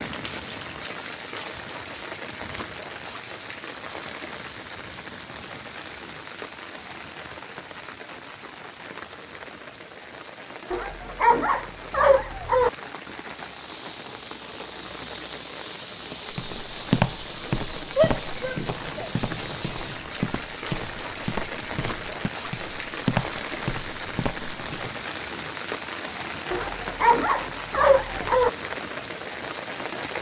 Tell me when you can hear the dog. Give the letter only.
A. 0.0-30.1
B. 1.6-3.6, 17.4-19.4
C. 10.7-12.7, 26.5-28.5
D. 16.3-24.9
C.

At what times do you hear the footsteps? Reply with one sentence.
You can hear the footsteps from 16.3 to 24.9 s.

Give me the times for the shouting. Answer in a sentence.
The shouting can be heard from 17.9 to 19.1 s.